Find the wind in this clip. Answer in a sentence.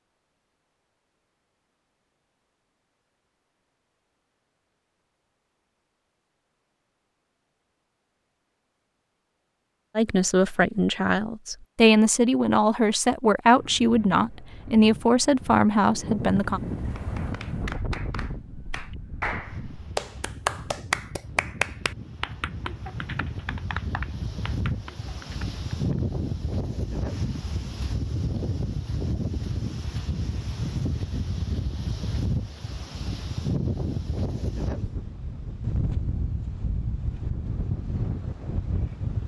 The wind can be heard from 13.6 to 39.2 s.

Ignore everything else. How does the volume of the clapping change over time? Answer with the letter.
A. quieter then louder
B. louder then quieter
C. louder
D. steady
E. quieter
B.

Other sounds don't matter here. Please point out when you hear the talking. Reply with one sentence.
The talking can be heard from 9.9 to 16.6 s.